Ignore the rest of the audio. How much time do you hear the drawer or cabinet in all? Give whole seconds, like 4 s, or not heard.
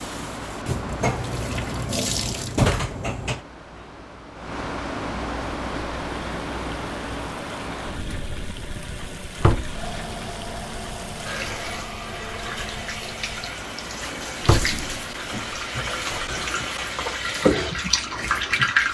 5 s.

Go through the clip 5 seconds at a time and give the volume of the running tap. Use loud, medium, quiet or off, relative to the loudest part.
medium, quiet, medium, loud.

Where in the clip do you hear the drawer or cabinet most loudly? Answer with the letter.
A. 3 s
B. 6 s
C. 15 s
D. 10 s
A.